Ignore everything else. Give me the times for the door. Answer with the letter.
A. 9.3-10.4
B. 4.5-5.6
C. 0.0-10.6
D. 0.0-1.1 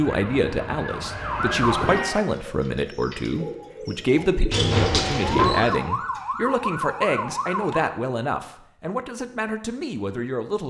B.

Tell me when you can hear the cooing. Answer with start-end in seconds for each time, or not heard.
1.8-6.2.